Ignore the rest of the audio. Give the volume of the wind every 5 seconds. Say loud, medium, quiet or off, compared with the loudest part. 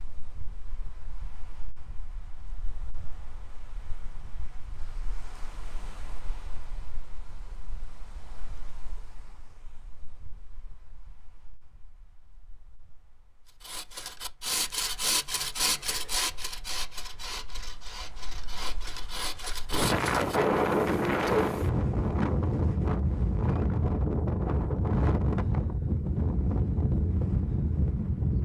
quiet, quiet, quiet, medium, loud, loud.